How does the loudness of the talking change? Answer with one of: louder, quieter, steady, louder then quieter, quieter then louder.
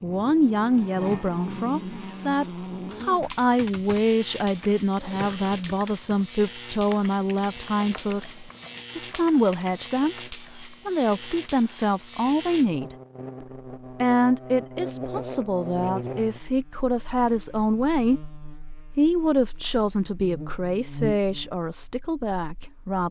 steady.